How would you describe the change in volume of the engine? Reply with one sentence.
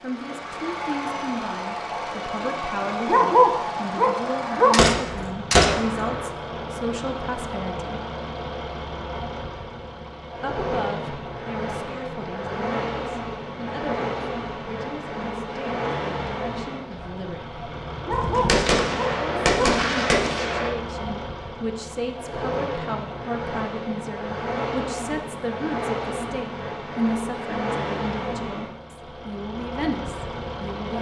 The volume of the engine stays about the same.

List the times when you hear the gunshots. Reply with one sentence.
You can hear the gunshots from 4.7 to 6.3 s and from 18.1 to 20.8 s.